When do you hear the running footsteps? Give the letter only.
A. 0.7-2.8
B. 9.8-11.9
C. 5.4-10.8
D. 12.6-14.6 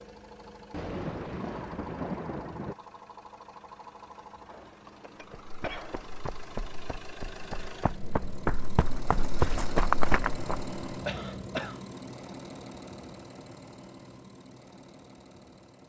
C.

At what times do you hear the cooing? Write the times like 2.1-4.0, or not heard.
not heard.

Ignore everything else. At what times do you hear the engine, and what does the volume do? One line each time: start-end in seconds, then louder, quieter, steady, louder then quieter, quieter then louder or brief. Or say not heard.
0.0-15.8 louder then quieter.